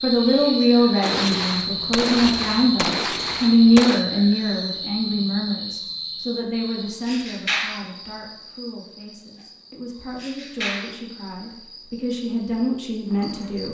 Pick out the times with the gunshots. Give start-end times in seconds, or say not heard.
1.0-4.0.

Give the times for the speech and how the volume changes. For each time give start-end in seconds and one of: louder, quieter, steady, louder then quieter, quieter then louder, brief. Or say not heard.
0.0-13.6 quieter then louder.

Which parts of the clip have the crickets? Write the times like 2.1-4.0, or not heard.
0.0-13.6.